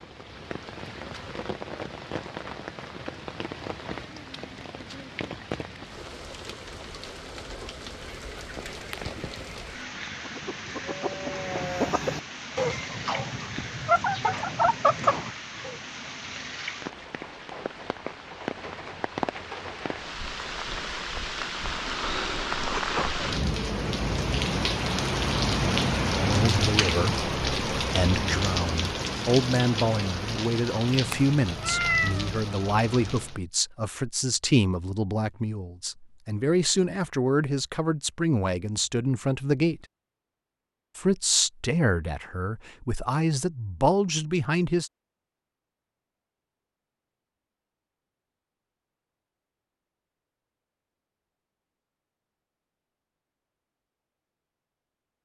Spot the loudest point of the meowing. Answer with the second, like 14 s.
32 s.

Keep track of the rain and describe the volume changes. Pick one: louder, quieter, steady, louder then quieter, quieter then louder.
louder.